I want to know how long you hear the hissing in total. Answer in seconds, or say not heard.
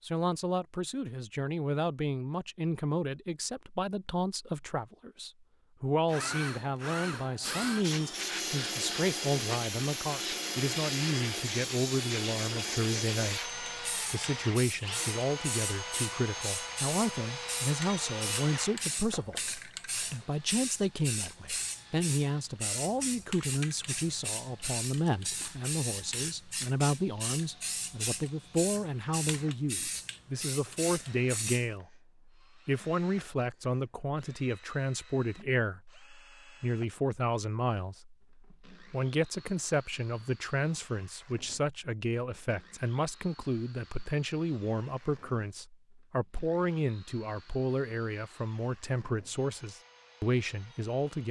24 s.